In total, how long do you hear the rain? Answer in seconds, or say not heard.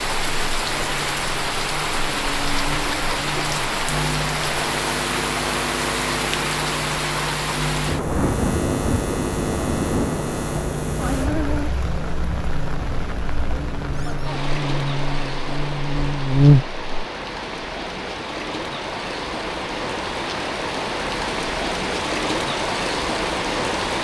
24 s.